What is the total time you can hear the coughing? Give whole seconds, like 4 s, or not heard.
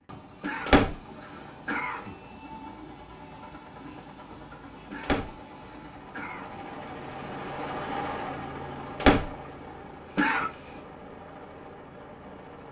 5 s.